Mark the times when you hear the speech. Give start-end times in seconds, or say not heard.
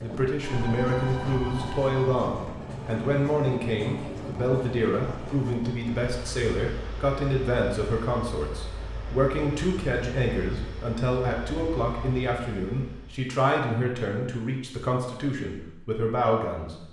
0.0-16.8.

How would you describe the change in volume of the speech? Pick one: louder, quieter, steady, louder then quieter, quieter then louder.
steady.